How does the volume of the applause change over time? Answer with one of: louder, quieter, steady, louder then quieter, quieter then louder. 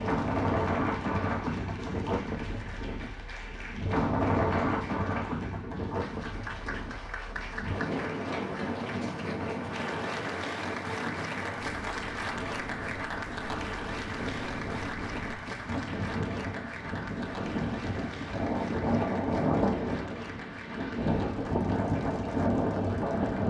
louder then quieter.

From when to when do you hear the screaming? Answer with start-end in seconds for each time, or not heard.
not heard.